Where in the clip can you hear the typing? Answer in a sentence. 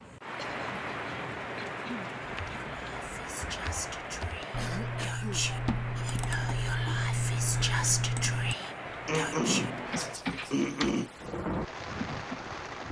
You can hear the typing from 2.2 to 12.8 s.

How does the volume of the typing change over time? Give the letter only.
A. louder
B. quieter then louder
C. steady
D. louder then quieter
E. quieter
D.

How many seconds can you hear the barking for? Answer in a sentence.
You can't hear the barking here.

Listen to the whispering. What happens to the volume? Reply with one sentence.
The loudness of the whispering goes up.